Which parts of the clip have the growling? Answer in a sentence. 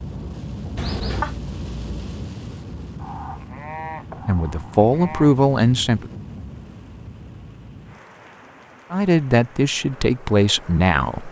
You can hear the growling from 0.8 to 1.4 s.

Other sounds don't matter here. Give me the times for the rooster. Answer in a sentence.
The rooster can't be heard in this clip.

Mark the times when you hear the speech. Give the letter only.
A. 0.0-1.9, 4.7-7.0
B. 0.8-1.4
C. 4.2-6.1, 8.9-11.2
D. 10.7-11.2
C.